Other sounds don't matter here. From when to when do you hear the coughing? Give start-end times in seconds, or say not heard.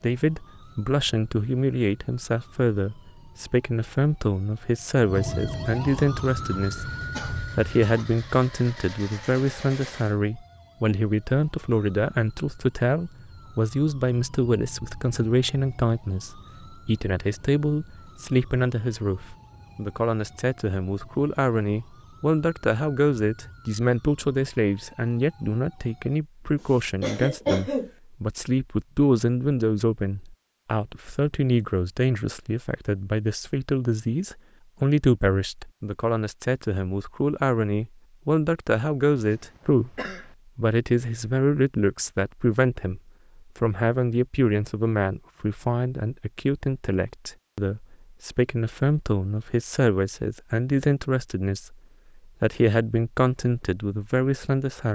7.1-8.1, 27.0-27.9, 39.1-40.4.